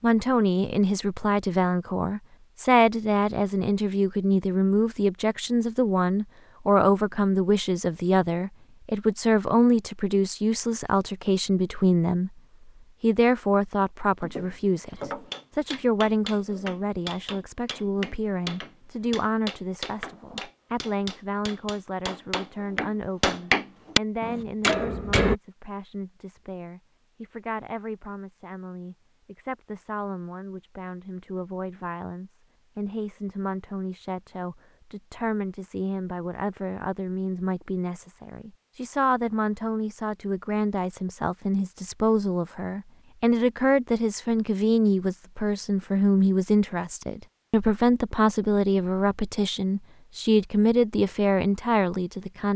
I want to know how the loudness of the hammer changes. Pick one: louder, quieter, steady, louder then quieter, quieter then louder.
louder.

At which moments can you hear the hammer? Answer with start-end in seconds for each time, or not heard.
14.2-25.4.